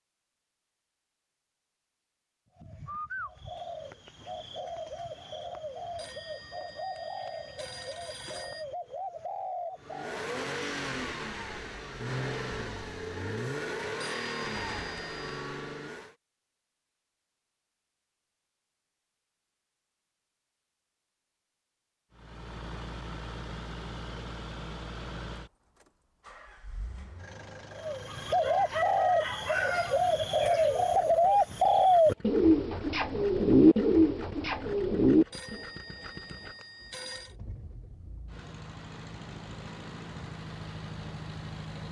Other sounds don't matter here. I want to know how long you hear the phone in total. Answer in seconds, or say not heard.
6 s.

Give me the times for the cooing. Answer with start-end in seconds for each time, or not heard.
2.5-10.2, 27.8-35.6.